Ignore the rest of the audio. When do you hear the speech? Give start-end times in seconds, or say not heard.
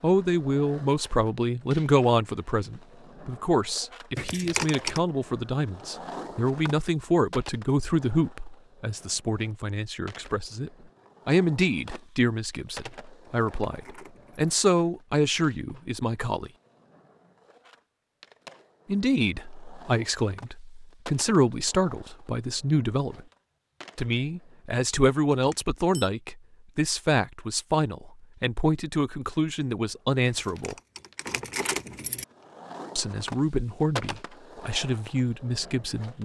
0.0-16.5, 18.9-23.2, 23.9-30.8, 33.0-36.2.